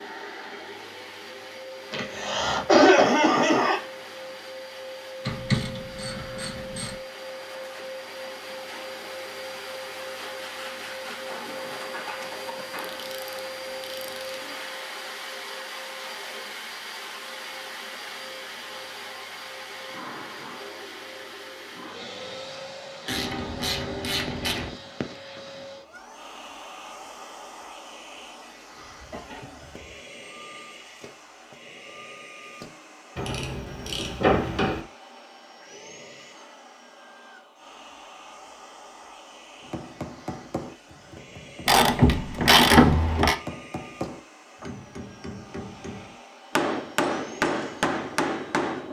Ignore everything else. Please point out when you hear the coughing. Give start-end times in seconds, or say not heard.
1.9-3.8, 28.8-29.9.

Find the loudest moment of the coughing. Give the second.
3 s.